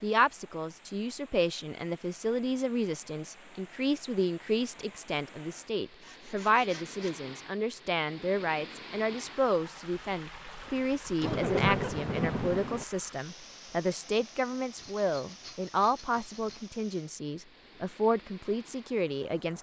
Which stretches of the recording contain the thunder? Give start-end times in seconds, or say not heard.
11.2-12.8.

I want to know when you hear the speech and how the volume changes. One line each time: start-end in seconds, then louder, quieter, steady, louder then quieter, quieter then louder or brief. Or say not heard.
0.0-19.5 steady.